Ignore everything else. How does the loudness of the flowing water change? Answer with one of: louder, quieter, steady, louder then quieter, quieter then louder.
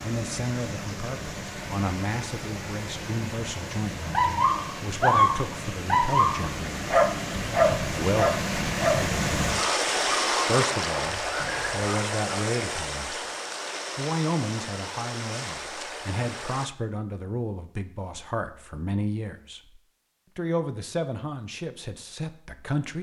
louder then quieter.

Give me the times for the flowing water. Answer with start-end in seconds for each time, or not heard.
0.0-16.7.